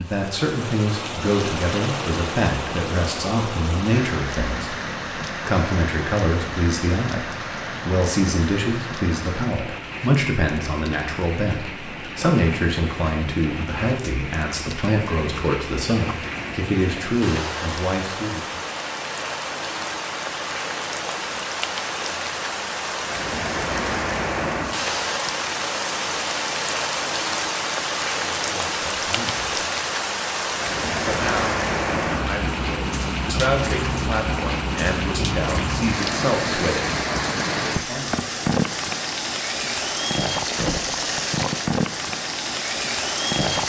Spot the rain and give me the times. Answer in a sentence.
You can hear the rain from 0.0 to 43.6 s.